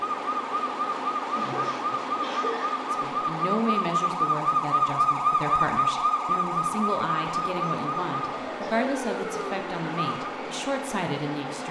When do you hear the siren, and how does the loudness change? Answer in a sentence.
The siren can be heard from 0.0 to 10.3 s, getting louder then quieter.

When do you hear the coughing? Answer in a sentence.
The coughing can be heard from 1.4 to 2.8 s and from 8.4 to 8.9 s.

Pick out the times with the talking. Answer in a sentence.
You can hear the talking from 2.9 to 11.6 s.